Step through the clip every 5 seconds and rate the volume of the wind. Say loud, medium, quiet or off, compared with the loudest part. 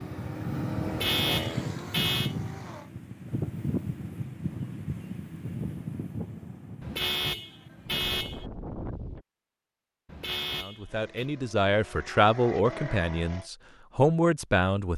loud, medium, off.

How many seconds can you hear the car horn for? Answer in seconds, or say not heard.
4 s.